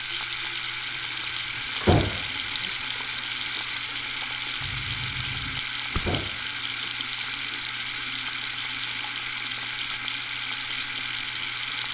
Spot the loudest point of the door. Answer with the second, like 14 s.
2 s.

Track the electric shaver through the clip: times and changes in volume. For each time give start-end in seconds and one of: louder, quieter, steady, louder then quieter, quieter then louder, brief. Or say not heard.
not heard.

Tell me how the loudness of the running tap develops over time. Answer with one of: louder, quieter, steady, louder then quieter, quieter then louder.
steady.